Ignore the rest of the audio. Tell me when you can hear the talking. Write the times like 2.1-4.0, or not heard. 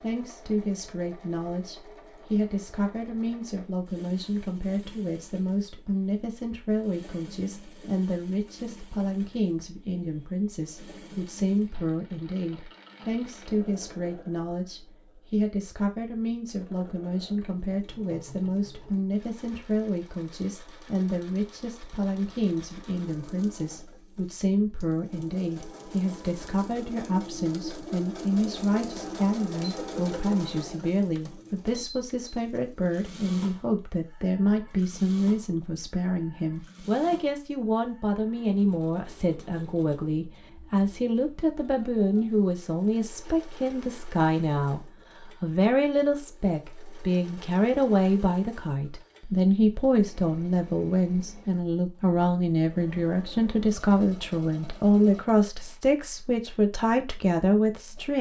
0.0-58.1.